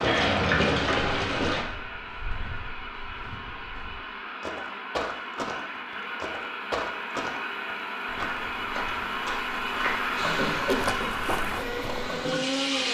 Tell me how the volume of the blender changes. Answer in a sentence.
The loudness of the blender goes up.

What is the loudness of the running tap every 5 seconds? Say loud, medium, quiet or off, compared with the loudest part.
loud, off, medium.